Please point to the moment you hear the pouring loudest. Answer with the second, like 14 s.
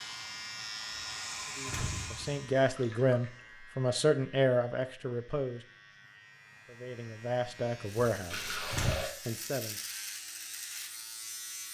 9 s.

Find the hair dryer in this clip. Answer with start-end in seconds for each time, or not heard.
0.0-2.5.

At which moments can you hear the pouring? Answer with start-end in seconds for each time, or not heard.
2.7-3.4, 8.3-9.1.